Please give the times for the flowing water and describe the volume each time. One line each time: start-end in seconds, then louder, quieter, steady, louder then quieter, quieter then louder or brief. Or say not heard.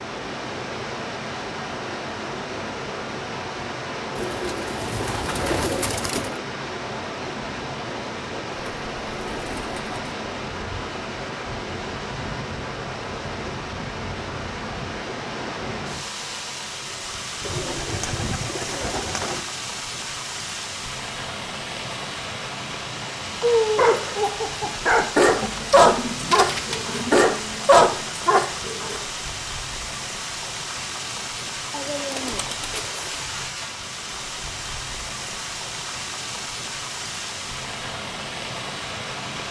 0.0-39.4 steady.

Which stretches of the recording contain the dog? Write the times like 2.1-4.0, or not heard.
23.4-29.0.